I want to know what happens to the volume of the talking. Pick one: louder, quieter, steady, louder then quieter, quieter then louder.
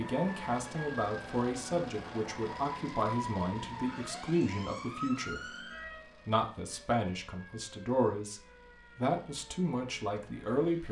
steady.